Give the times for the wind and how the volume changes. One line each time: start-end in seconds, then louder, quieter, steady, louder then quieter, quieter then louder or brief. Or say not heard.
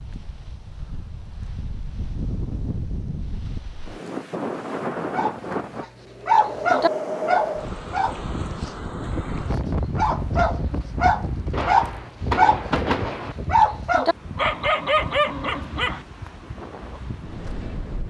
0.0-18.0 louder then quieter.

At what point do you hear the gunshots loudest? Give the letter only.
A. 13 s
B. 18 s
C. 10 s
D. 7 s
A.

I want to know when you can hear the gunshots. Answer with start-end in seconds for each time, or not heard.
11.5-13.3.